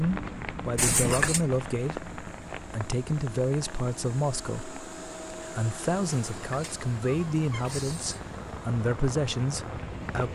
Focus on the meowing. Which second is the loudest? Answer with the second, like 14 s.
1 s.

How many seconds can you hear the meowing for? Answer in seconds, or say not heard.
3 s.